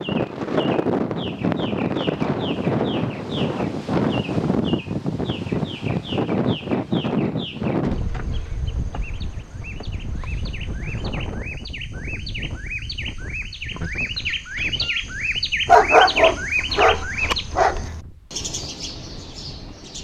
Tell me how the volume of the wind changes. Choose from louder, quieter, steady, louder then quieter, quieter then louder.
quieter.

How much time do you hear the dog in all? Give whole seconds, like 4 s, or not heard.
2 s.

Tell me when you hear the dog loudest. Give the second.
16 s.